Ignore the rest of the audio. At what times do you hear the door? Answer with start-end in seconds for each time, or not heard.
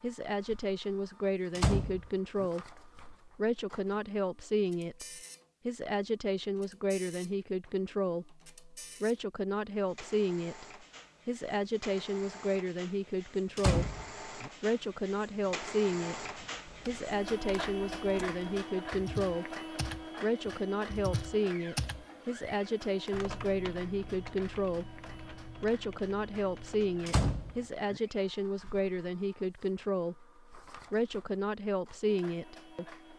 1.6-2.5, 13.6-14.5, 27.1-28.0.